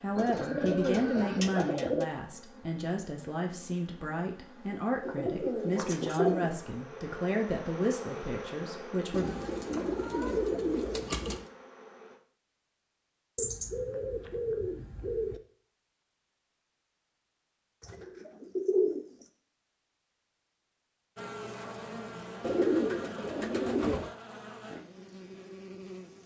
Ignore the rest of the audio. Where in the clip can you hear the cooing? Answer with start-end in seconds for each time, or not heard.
0.1-2.0, 5.0-6.5, 9.1-11.4, 13.3-15.4, 17.8-19.2, 22.4-24.1.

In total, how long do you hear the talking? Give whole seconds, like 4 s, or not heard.
9 s.